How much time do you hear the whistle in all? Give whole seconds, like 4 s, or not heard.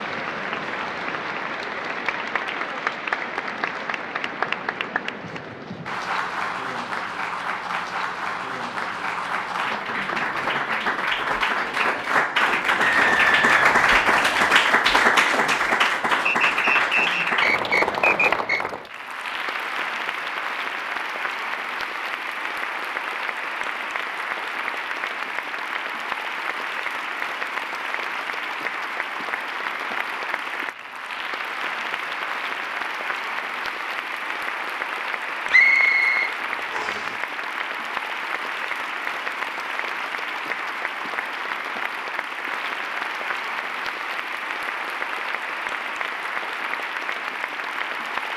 6 s.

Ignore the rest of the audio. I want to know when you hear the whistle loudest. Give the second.
36 s.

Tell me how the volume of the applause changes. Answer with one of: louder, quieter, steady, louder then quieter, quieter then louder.
louder then quieter.